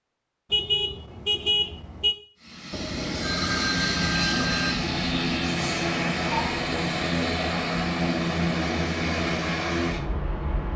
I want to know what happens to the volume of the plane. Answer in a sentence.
The volume of the plane stays about the same.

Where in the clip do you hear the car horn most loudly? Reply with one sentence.
The loudest moment of the car horn is at 1 second.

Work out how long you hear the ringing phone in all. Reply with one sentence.
The ringing phone can be heard for 2 seconds in total.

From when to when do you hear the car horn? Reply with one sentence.
You can hear the car horn from 0.5 to 2.1 s and from 6.2 to 6.7 s.